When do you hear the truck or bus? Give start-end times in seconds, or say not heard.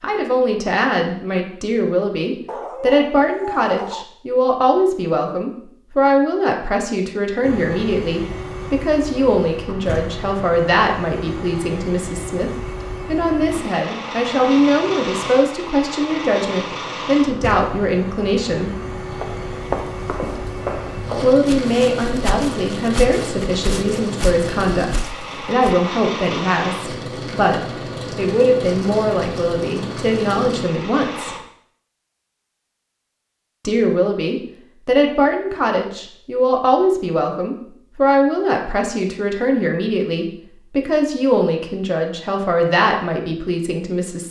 7.4-31.4.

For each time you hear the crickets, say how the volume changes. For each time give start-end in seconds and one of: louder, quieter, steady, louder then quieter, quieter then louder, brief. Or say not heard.
not heard.